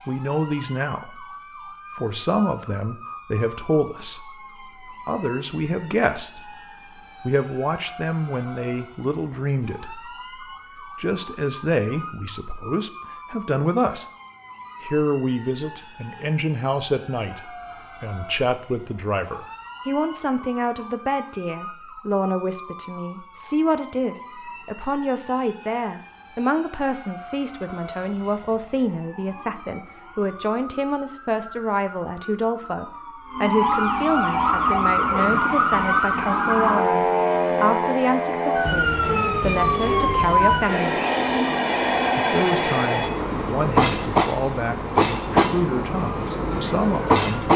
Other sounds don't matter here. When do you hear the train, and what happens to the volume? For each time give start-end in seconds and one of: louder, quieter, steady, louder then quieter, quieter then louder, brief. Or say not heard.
34.3-47.5 louder.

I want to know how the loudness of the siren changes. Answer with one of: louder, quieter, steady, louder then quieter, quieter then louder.
louder.